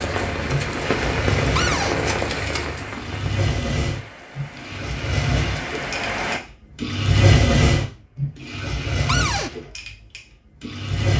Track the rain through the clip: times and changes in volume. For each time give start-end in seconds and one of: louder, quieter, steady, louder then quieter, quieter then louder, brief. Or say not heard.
0.0-6.4 quieter then louder.